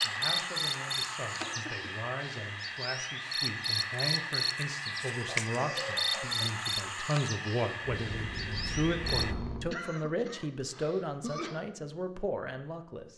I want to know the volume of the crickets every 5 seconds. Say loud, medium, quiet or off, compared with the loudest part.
loud, loud, off.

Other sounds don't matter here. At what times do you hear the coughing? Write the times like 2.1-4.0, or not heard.
1.4-2.0, 5.2-6.5, 9.7-11.6.